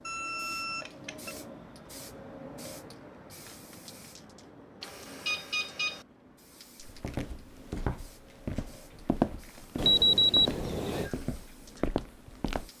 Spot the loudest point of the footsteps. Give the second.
9 s.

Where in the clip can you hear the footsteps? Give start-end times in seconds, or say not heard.
6.8-12.7.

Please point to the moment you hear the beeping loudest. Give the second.
10 s.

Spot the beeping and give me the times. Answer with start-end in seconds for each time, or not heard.
0.1-1.4, 4.8-6.0, 9.8-11.1.